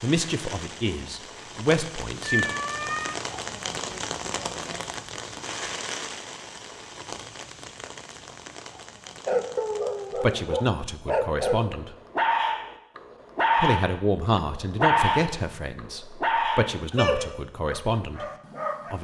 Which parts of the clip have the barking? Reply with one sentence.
You can hear the barking from 9.2 to 19.0 s.